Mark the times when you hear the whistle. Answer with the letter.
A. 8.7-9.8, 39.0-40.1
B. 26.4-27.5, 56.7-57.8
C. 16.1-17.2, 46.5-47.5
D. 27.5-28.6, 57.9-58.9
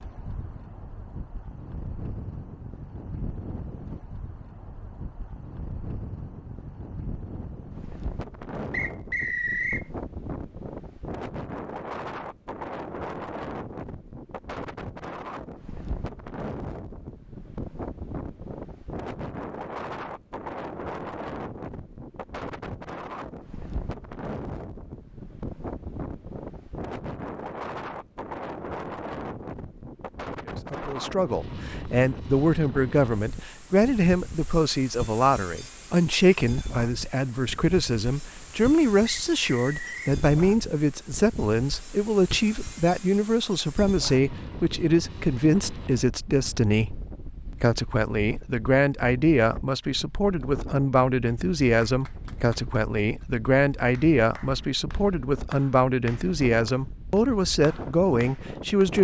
A.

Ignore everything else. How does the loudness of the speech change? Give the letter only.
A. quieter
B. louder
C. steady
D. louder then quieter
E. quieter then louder
C.